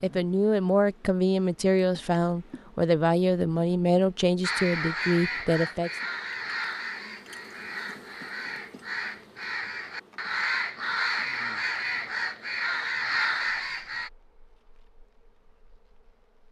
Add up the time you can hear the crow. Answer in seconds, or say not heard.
10 s.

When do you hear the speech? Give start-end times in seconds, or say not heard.
0.0-5.9.